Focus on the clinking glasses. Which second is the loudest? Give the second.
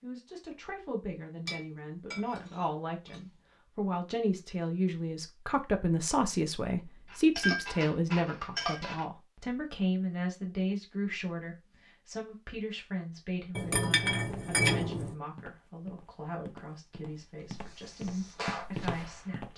15 s.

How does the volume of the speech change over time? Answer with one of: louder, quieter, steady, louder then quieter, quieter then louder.
louder then quieter.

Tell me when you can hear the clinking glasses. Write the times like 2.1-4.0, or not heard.
1.4-3.2, 7.0-9.1, 13.6-15.2.